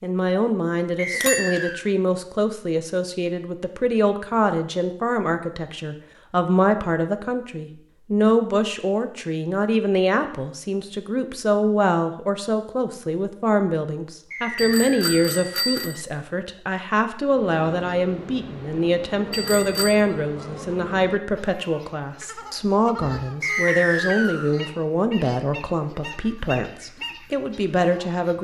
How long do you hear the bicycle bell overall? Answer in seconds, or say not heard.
3 s.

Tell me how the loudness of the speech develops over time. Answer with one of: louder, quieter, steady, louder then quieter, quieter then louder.
steady.